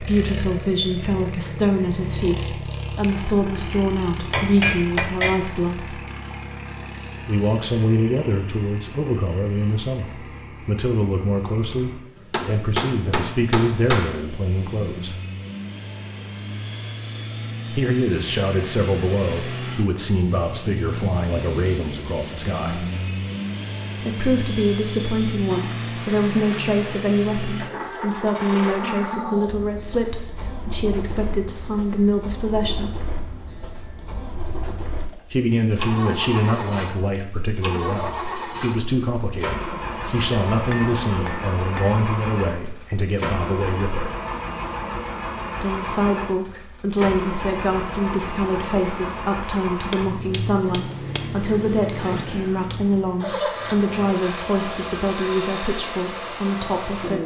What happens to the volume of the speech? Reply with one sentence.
The volume of the speech stays about the same.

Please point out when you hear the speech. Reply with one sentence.
The speech can be heard from 0.0 to 6.0 s, from 7.2 to 15.2 s, from 17.7 to 22.9 s, from 24.0 to 33.0 s, from 35.3 to 44.1 s and from 45.6 to 57.2 s.